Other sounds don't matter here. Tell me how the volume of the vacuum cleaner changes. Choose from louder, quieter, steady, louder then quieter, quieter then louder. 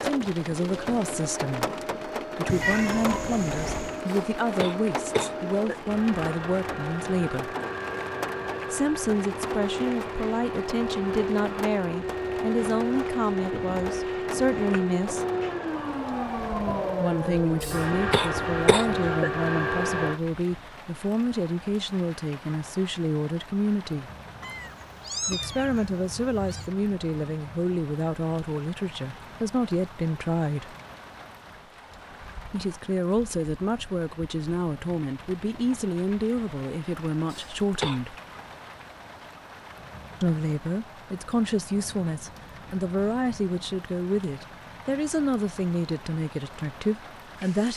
louder.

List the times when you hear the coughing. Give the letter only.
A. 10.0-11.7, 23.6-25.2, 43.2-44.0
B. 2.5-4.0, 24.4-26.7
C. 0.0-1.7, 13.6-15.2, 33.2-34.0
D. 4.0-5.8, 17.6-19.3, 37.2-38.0
D.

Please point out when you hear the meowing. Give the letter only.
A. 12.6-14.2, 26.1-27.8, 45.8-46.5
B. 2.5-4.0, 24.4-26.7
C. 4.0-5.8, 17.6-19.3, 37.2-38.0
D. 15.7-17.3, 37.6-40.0
B.